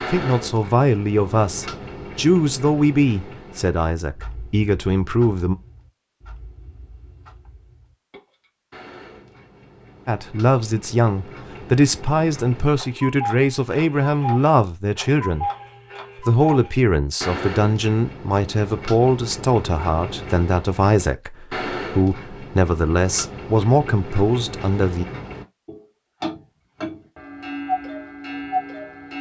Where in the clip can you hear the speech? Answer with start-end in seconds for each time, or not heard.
0.1-5.5, 10.1-15.4, 16.1-25.1.